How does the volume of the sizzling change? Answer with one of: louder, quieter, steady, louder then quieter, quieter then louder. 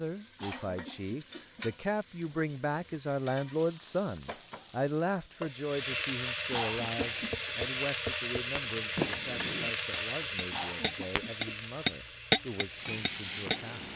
louder then quieter.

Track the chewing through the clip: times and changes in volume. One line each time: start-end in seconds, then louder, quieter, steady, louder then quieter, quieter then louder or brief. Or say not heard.
not heard.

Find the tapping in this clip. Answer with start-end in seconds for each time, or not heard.
7.0-13.6.